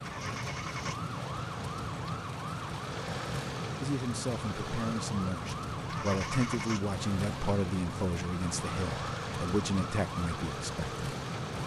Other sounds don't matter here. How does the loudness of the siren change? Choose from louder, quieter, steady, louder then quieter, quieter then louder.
steady.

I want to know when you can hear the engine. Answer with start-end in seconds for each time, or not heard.
0.0-11.6.